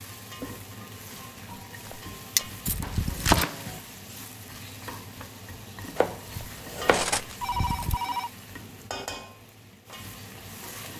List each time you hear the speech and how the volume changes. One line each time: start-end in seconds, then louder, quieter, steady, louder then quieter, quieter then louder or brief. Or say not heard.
not heard.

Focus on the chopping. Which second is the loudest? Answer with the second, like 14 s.
3 s.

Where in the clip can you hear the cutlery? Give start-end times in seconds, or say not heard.
1.9-3.5, 6.3-8.0.